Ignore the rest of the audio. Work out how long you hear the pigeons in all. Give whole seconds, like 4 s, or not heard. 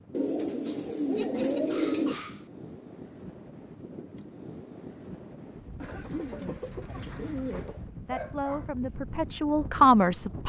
4 s.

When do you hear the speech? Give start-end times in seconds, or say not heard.
8.1-10.4.